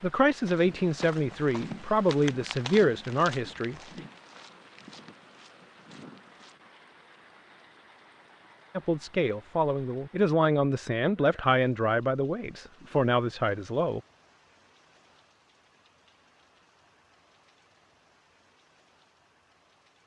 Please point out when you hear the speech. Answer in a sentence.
You can hear the speech from 0.0 to 3.8 s and from 8.8 to 14.0 s.